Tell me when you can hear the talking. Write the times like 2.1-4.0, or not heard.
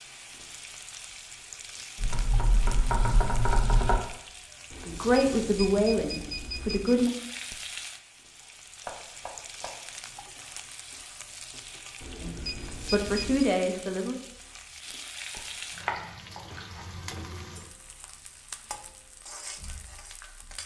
4.8-7.1, 12.2-14.2.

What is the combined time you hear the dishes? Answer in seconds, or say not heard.
not heard.